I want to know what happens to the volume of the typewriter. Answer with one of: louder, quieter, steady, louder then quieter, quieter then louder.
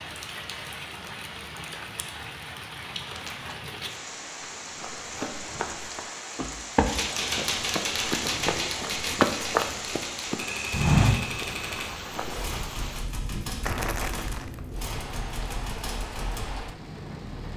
quieter.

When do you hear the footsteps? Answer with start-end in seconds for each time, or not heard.
4.3-12.6.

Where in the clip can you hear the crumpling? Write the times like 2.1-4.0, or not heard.
3.0-3.5, 13.6-14.8.